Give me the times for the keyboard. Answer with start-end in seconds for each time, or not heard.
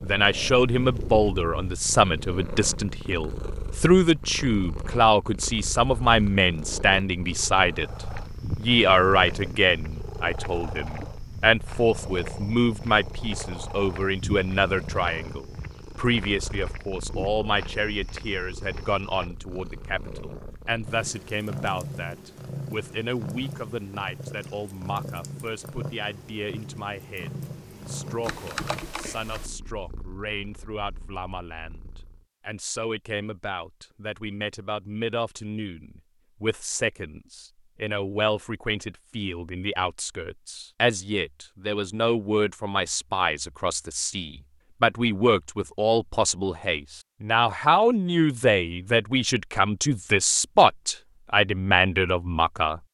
28.2-29.5.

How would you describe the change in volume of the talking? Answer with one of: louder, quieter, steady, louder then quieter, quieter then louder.
quieter then louder.